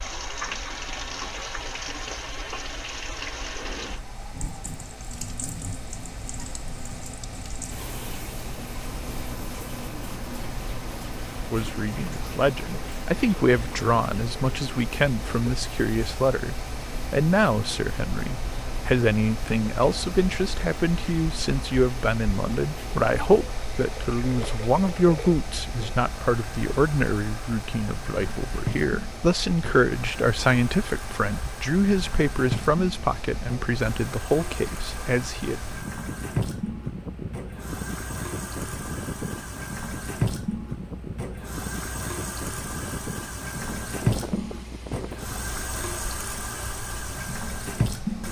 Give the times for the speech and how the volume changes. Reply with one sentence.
You can hear the speech from 11.5 to 35.6 s, at a steady volume.